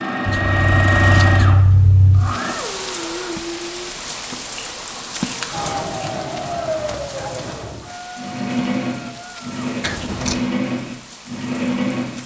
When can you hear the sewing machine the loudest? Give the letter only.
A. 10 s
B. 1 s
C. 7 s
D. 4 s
B.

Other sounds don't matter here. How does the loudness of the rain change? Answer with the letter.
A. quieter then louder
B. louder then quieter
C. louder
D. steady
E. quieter
E.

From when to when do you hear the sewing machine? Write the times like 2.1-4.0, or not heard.
0.0-2.5, 5.5-12.2.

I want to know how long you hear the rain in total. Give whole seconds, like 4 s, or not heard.
10 s.